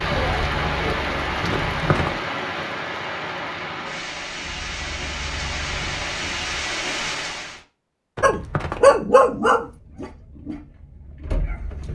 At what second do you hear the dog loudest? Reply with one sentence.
The volume of the dog peaks at 9 seconds.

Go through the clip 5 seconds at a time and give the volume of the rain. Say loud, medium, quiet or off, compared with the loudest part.
loud, loud, off.